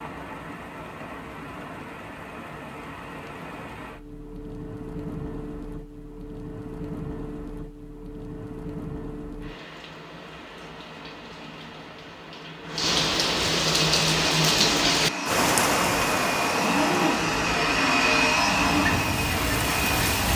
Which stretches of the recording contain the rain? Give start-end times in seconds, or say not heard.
0.0-20.3.